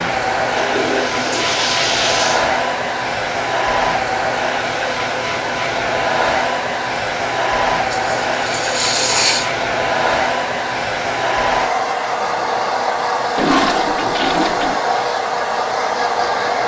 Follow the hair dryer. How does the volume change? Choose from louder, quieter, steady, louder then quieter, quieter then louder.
steady.